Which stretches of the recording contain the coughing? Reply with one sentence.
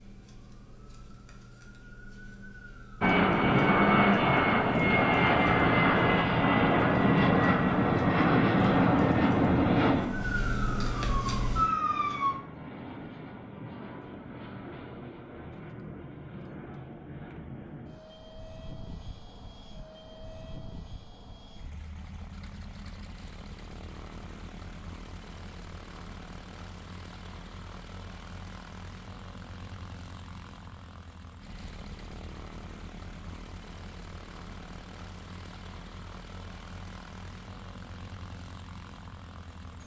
You can't hear the coughing here.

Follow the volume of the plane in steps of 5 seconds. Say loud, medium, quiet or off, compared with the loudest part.
loud, loud, quiet, quiet, quiet, quiet, quiet, quiet.